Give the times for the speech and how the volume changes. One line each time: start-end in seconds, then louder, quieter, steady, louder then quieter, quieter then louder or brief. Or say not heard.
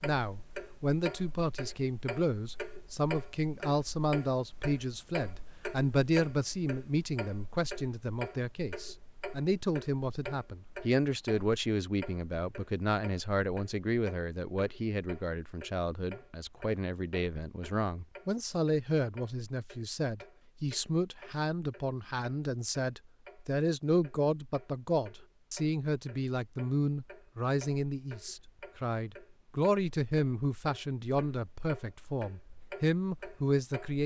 0.0-34.0 steady.